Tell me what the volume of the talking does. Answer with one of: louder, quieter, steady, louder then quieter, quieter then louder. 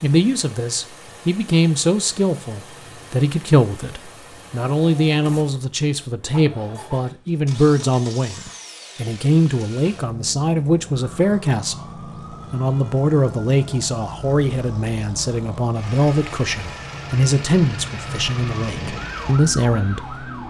steady.